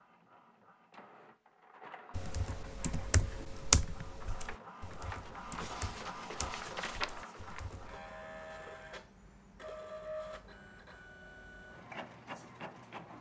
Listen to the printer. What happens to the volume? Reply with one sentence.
The volume of the printer goes up, then down.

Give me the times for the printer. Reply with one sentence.
The printer can be heard from 0.0 to 13.1 s.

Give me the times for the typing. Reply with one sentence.
You can hear the typing from 2.1 to 8.0 s.